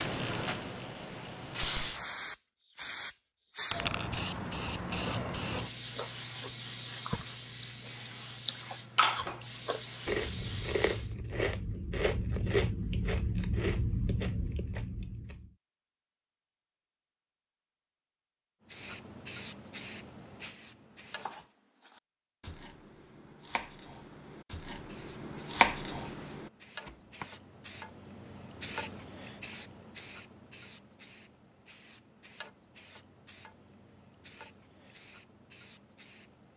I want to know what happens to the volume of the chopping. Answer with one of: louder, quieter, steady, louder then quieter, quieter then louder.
louder then quieter.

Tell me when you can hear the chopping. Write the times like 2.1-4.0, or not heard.
21.1-27.3.